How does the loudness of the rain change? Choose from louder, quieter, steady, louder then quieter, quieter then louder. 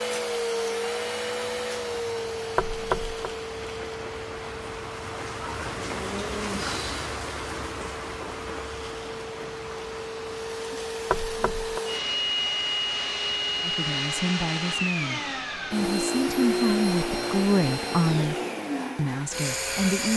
louder then quieter.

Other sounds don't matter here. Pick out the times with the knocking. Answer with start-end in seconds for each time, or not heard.
2.5-3.1, 11.1-11.8.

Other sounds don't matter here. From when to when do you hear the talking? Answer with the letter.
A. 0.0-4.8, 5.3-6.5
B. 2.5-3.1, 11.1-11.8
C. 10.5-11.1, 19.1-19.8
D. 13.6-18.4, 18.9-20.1
D.